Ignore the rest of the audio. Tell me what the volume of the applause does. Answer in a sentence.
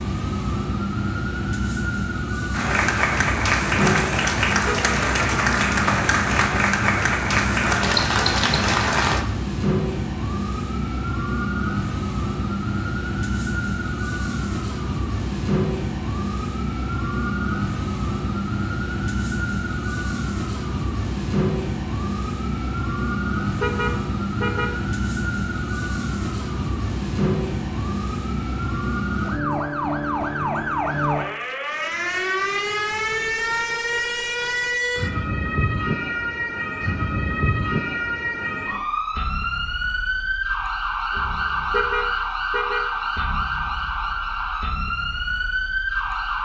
The volume of the applause stays about the same.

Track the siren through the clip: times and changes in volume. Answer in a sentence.
The siren can be heard from 0.0 to 46.3 s, at a steady volume.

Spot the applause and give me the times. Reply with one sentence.
The applause can be heard from 2.5 to 9.2 s.